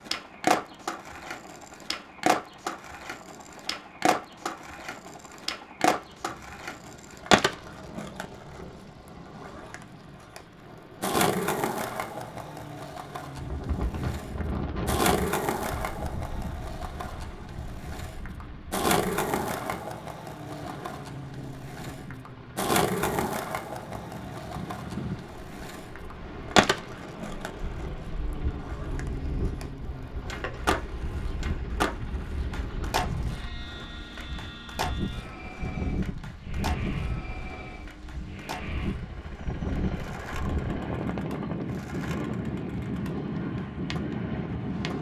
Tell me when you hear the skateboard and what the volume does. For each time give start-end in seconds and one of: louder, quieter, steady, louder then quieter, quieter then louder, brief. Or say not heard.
0.0-44.9 quieter.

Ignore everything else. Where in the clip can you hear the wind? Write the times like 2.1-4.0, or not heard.
13.3-44.9.